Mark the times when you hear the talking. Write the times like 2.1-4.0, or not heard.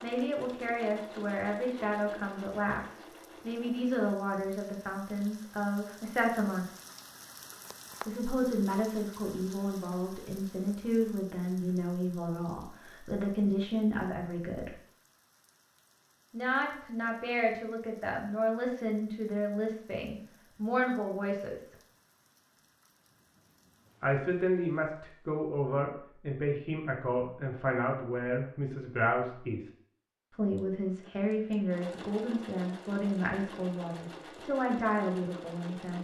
0.0-6.7, 8.1-14.8, 16.3-21.8, 24.0-29.6, 30.4-35.9.